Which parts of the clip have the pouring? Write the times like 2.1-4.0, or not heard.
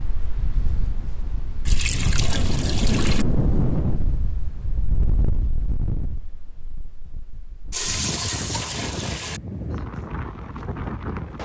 1.6-3.2, 7.7-9.4.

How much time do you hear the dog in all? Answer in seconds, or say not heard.
not heard.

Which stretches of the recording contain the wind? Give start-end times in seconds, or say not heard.
0.0-11.4.